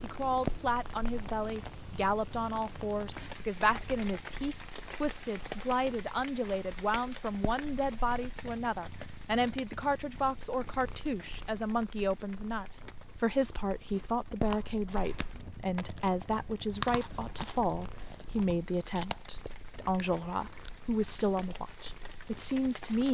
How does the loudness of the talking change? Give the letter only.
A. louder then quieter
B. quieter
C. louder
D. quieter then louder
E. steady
E.